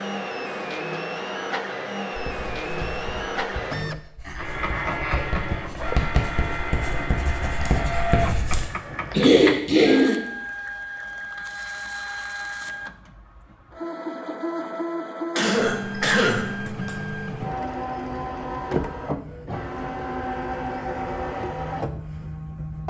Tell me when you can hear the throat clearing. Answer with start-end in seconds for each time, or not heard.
4.2-5.3, 9.1-10.2, 15.3-16.9.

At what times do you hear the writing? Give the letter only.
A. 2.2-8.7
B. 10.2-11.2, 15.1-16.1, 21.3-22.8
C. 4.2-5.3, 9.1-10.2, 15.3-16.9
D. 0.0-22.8
A.